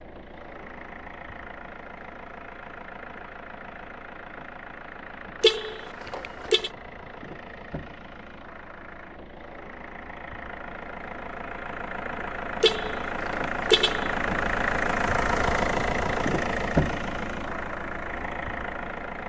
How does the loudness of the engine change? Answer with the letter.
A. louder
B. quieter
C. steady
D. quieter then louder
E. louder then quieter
A.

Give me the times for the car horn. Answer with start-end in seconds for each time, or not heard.
5.4-6.7, 12.6-14.2.